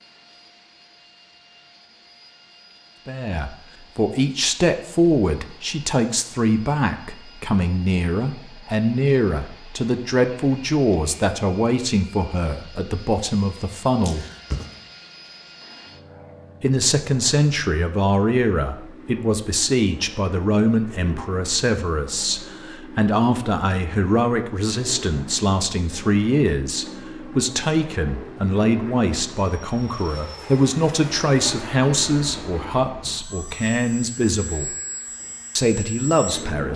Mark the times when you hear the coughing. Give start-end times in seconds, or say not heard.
14.0-14.8.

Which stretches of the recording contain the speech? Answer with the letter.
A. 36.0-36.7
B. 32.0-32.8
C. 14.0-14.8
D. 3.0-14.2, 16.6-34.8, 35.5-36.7
D.